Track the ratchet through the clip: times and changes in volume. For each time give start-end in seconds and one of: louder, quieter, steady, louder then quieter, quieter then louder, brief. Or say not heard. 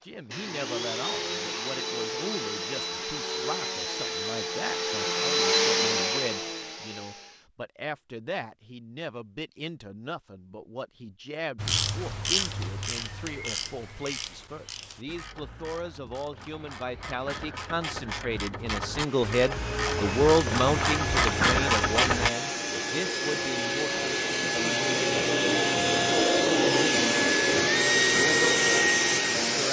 11.6-22.3 quieter then louder.